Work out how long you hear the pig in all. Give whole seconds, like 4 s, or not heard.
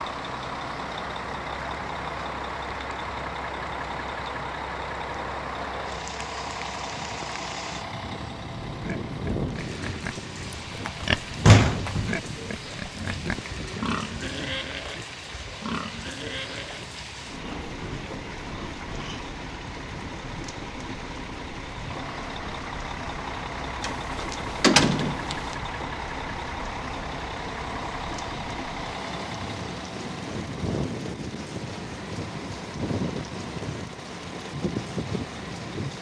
11 s.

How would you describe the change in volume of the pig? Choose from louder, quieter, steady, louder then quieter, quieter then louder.
louder then quieter.